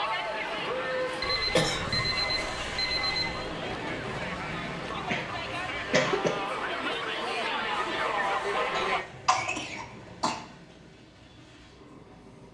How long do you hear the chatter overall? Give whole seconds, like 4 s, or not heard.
9 s.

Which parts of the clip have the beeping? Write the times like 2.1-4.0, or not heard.
1.2-3.5.